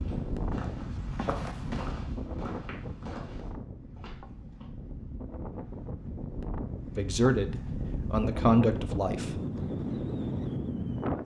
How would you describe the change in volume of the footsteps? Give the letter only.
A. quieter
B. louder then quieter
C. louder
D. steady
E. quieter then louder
B.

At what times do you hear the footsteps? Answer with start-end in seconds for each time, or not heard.
0.0-4.7.